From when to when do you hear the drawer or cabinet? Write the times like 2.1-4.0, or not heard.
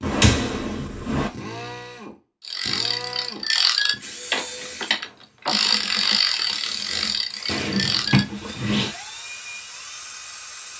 0.0-1.3, 7.5-8.9.